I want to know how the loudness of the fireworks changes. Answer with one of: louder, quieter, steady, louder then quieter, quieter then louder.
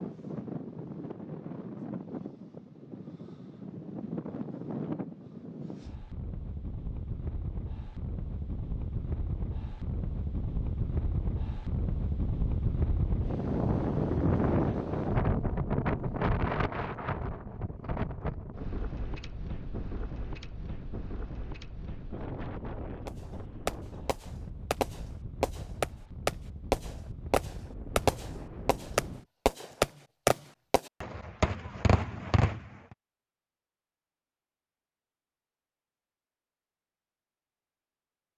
louder then quieter.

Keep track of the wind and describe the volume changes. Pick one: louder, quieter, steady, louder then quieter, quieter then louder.
louder then quieter.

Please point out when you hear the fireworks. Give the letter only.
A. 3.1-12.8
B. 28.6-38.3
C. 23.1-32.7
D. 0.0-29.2
C.